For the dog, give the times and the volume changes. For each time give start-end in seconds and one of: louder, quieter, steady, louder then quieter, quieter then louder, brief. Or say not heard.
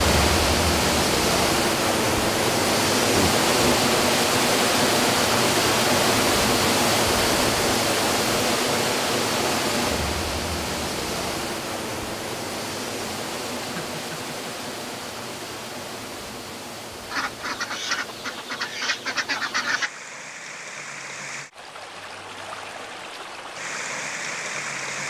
not heard.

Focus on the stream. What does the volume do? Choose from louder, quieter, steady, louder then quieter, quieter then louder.
quieter.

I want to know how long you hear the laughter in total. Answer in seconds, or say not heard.
2 s.